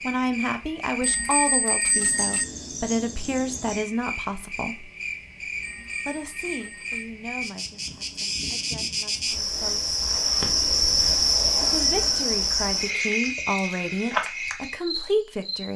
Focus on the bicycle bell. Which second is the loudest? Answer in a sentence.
The loudest moment of the bicycle bell is at 2 seconds.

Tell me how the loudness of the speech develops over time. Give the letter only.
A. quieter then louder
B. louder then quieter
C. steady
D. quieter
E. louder
A.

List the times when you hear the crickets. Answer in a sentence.
The crickets can be heard from 0.0 to 15.7 s.